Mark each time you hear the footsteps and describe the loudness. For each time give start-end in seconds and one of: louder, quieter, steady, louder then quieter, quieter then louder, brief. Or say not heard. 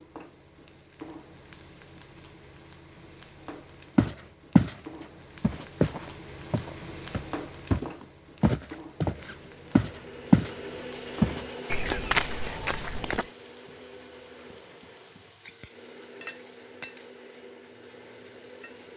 4.0-4.8 brief
5.4-10.5 quieter then louder
11.2-13.2 brief.